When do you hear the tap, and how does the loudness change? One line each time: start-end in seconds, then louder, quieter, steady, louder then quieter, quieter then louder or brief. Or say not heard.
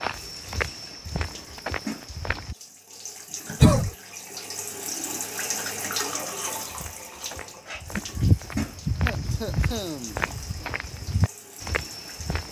0.0-12.4 louder then quieter.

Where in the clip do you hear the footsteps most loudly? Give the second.
8 s.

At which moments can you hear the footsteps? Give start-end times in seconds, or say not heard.
0.0-2.5, 6.6-12.4.